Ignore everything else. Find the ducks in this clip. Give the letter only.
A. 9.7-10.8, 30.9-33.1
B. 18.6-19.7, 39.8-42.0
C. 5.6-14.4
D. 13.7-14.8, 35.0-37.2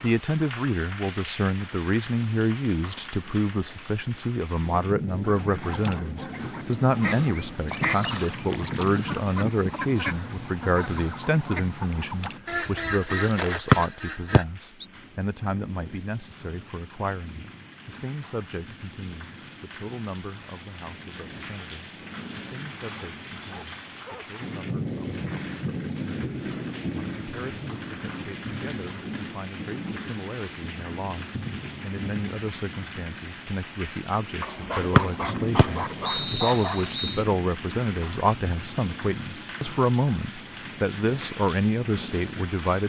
C.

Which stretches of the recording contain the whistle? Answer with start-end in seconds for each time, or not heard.
13.7-14.8, 35.0-37.2.